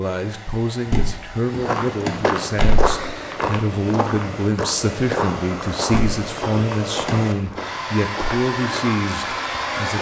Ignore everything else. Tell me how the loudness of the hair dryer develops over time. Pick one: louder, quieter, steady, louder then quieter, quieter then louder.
louder.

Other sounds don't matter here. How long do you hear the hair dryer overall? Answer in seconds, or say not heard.
10 s.